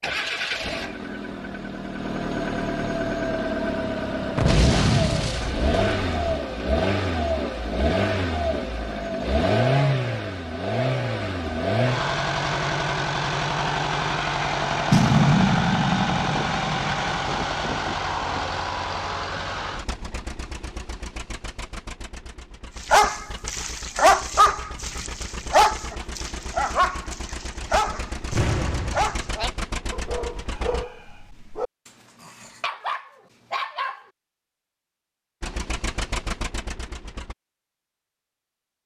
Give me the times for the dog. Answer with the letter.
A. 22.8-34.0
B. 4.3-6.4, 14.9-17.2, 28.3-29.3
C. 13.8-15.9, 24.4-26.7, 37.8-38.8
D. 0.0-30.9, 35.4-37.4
A.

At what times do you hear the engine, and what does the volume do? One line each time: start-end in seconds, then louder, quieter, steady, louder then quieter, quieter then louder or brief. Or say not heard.
0.0-30.9 quieter
35.4-37.4 brief.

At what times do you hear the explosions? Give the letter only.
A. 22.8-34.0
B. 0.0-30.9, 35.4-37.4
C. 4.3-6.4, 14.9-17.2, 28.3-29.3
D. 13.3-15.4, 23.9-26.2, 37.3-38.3
C.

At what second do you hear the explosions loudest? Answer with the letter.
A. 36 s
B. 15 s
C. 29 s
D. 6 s
B.